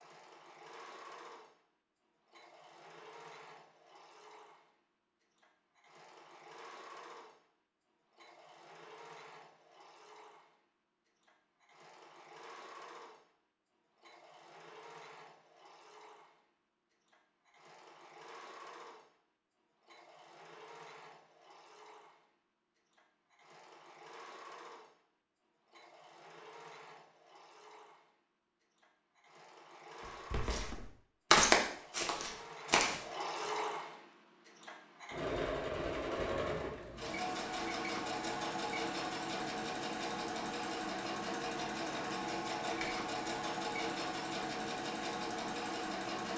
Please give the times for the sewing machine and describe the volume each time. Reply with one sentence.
You can hear the sewing machine from 0.0 to 46.3 s, getting louder.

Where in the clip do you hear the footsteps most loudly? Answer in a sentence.
The volume of the footsteps peaks at 31 seconds.